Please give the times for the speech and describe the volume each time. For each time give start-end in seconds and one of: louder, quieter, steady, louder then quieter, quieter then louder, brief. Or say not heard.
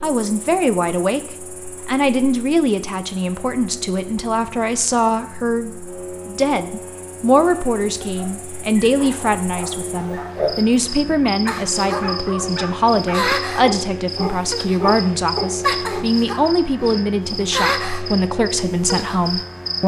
0.0-19.8 steady.